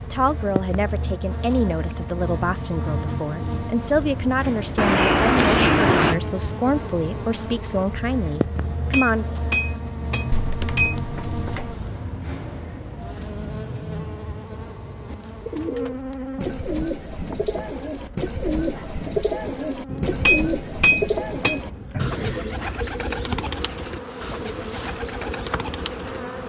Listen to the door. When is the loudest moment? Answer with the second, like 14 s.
6 s.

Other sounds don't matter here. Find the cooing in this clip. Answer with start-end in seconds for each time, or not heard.
15.1-26.2.